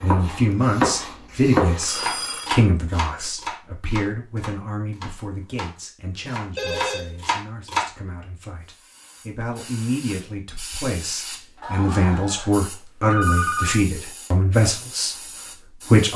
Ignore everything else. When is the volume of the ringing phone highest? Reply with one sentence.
The loudest moment of the ringing phone is at 13 seconds.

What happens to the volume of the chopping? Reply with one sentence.
The volume of the chopping goes down, then up.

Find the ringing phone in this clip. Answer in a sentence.
The ringing phone can be heard from 1.8 to 2.5 s, from 6.5 to 7.2 s and from 11.6 to 13.8 s.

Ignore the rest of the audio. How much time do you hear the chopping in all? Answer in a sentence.
The chopping can be heard for 8 seconds in total.